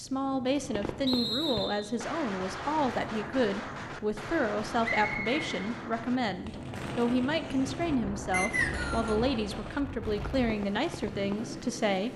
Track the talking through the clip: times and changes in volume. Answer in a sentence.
You can hear the talking from 0.0 to 12.1 s, at a steady volume.